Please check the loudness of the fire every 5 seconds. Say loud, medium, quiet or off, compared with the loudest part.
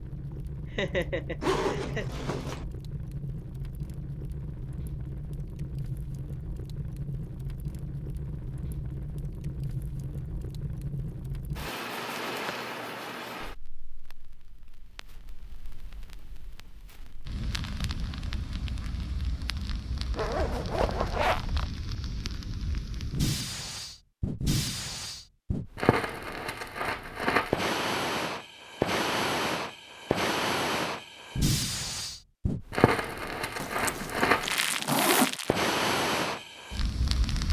medium, medium, medium, quiet, medium, loud, loud, loud.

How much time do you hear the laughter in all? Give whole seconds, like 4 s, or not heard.
2 s.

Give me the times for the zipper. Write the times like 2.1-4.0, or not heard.
1.4-2.6, 20.1-21.6, 33.6-35.4.